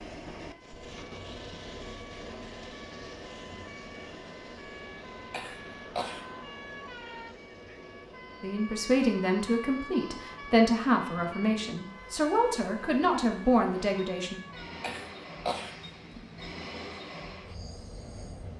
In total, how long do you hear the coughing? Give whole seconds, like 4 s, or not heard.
2 s.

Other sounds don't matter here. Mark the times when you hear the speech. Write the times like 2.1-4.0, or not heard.
8.4-14.3.